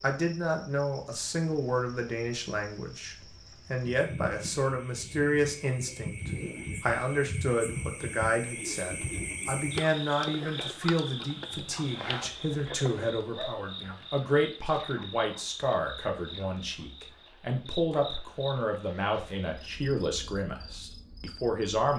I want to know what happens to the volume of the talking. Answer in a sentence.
The volume of the talking stays about the same.